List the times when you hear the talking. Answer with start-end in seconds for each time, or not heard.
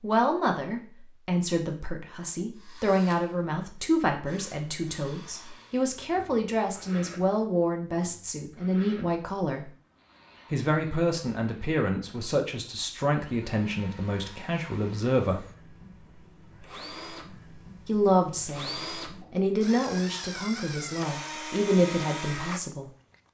0.0-9.7, 10.5-15.4, 17.9-22.9.